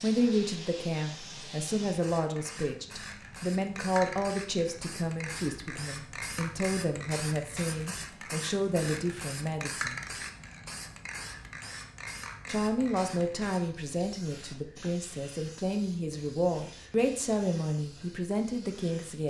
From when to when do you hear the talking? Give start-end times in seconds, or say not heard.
0.0-10.2, 12.4-19.2.